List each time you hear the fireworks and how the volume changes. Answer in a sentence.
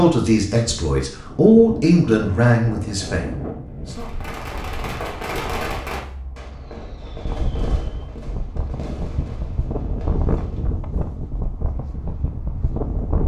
You can hear the fireworks from 3.9 to 10.8 s, getting quieter.